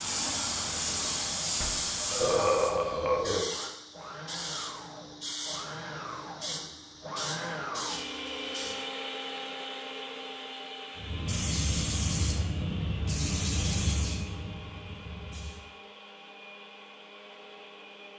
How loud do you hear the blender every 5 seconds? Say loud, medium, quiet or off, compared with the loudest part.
medium, loud, medium, medium.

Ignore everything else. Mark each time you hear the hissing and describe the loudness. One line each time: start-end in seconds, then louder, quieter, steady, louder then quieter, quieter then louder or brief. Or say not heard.
0.0-8.8 quieter
11.0-15.7 quieter.